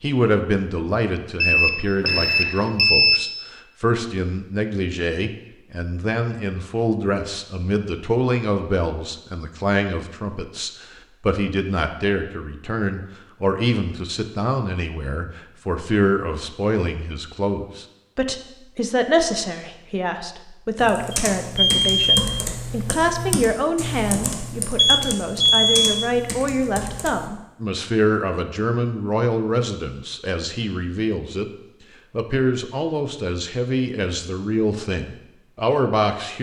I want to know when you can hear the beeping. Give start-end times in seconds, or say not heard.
1.4-3.2, 21.1-22.2, 24.8-25.9.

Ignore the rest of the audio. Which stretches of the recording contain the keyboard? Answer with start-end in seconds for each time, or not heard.
20.8-27.3.